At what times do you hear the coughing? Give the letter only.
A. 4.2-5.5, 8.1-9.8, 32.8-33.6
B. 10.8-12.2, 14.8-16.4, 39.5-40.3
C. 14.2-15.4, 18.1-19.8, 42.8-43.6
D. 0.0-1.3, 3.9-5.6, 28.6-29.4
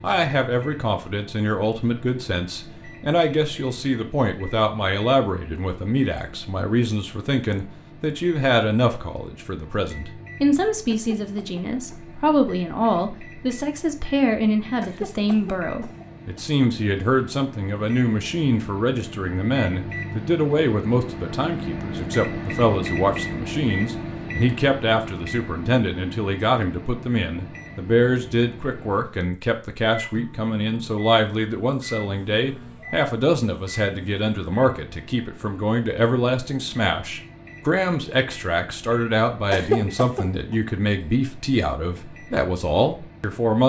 B.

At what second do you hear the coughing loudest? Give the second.
40 s.